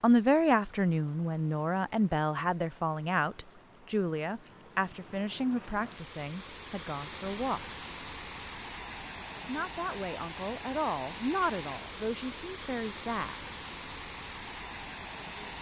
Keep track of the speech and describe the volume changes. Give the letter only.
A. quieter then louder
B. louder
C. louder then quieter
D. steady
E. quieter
E.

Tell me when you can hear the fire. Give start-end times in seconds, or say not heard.
not heard.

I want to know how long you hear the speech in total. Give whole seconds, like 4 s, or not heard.
12 s.